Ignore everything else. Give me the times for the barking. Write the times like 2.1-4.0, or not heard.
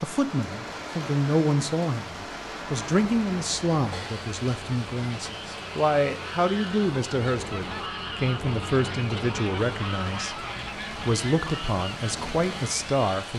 not heard.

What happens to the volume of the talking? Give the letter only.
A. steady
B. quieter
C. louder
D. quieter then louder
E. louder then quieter
A.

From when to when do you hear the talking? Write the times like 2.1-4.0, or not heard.
0.0-13.3.